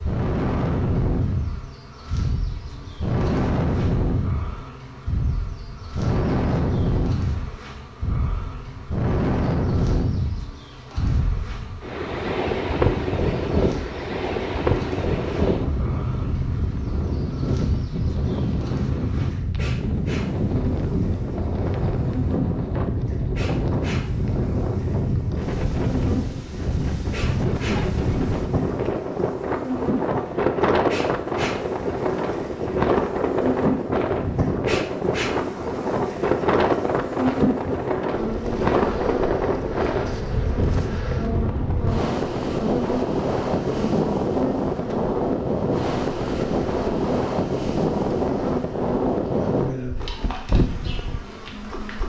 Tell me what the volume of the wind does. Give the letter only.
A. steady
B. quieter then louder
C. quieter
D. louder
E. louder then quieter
A.